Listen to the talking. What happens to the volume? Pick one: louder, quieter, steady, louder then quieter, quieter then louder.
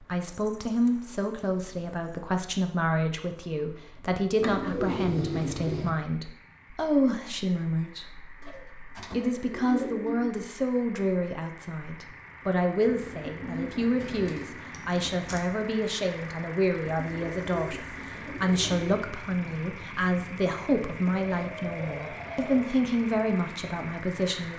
steady.